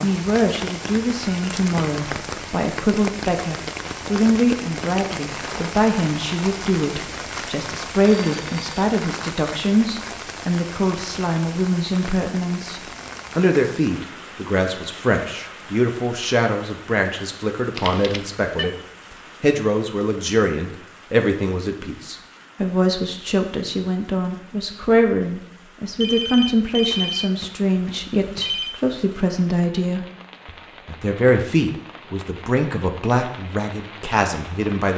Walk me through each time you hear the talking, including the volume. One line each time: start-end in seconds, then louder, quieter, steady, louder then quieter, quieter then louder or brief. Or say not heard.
0.0-34.9 steady.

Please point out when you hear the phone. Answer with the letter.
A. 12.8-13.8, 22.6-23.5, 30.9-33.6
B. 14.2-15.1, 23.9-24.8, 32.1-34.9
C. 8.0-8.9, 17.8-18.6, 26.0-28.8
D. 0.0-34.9
C.